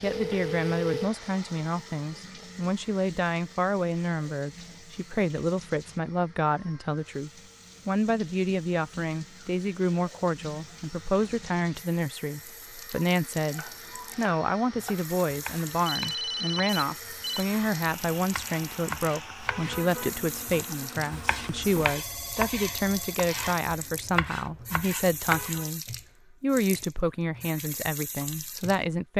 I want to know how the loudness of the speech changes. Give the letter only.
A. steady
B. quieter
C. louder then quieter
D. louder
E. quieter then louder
A.